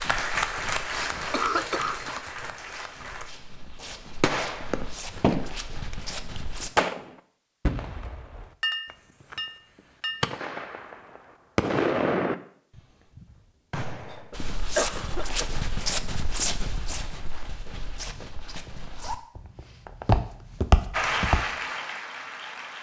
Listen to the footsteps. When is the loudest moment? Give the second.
21 s.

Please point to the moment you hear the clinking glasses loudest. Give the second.
9 s.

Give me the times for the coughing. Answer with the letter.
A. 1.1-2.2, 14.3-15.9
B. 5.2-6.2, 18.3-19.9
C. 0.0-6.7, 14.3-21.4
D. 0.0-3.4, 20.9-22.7
A.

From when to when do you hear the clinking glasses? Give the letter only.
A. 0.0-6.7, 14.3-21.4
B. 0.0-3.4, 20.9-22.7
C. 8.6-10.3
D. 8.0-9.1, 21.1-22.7
C.